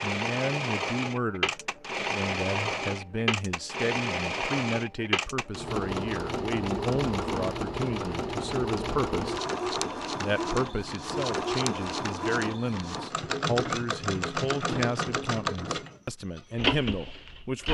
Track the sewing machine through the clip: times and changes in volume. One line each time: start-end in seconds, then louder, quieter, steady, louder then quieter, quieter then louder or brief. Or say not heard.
0.0-17.7 steady.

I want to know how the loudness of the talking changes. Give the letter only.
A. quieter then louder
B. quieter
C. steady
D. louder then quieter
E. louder
C.